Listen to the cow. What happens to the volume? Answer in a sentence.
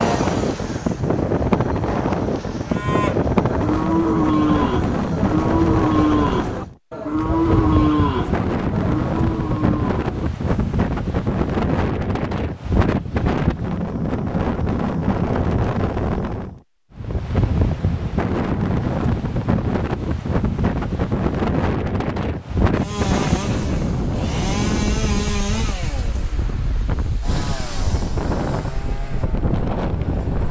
The volume of the cow goes down.